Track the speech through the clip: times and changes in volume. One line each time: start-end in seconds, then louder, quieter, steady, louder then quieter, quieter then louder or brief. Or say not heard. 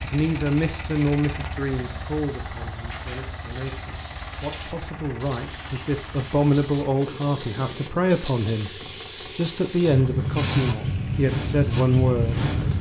0.0-12.6 quieter then louder.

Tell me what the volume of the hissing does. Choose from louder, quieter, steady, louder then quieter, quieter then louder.
louder.